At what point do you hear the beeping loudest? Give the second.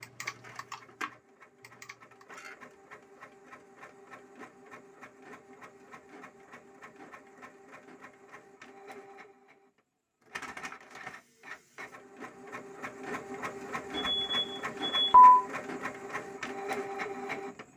15 s.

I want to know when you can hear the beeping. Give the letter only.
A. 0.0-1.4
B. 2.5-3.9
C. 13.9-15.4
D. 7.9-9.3
C.